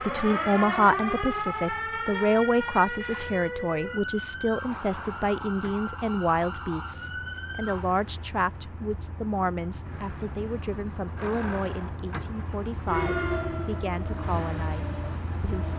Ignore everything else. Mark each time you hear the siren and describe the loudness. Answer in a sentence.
The siren can be heard from 0.0 to 7.9 s, getting quieter; and briefly from 12.8 to 15.7 s.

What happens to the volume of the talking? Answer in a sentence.
The volume of the talking goes down.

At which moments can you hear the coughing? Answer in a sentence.
The coughing can't be heard in this clip.